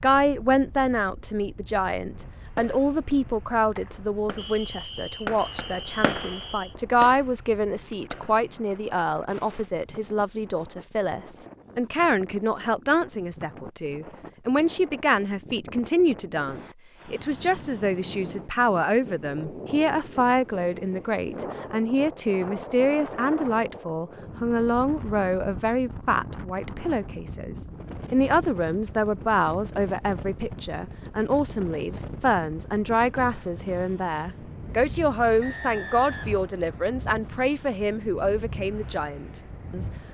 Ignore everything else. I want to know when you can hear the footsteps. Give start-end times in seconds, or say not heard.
not heard.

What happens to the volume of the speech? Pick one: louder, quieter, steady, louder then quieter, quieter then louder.
steady.